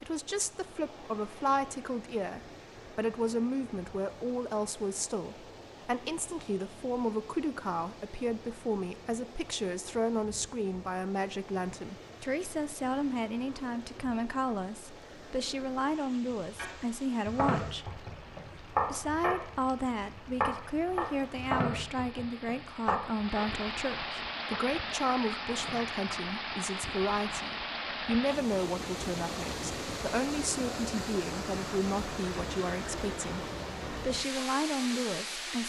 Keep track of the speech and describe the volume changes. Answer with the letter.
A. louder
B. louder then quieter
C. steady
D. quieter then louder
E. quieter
C.